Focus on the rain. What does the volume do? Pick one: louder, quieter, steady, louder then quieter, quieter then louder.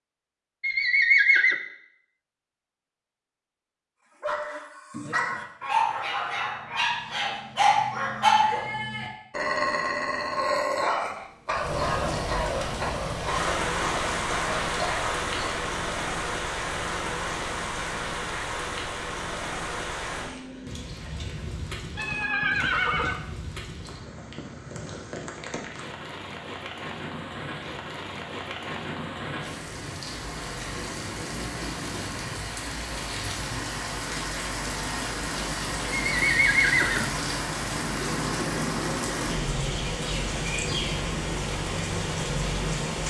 quieter then louder.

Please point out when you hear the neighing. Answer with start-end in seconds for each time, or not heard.
0.6-1.6, 21.9-23.2, 36.1-37.1.